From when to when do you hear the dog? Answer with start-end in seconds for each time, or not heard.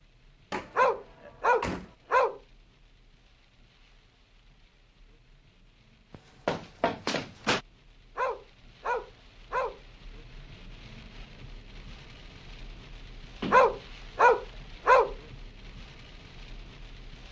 0.8-2.4, 8.2-9.8, 13.5-15.2.